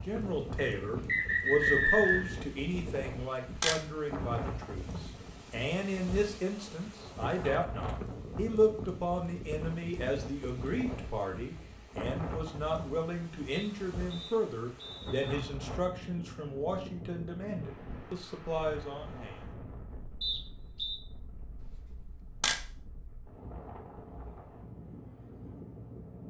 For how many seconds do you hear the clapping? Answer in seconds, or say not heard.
not heard.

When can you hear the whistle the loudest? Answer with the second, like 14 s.
2 s.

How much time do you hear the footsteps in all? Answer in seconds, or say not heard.
not heard.